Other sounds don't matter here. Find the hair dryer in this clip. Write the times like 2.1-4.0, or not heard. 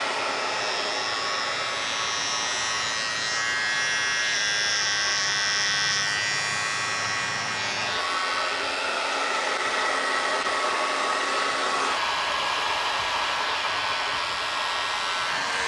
0.0-15.6.